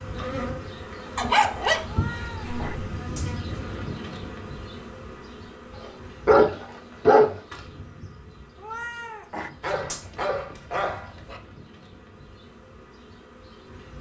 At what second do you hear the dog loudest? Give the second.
7 s.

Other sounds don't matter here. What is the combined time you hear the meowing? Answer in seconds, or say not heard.
3 s.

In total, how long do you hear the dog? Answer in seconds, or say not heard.
5 s.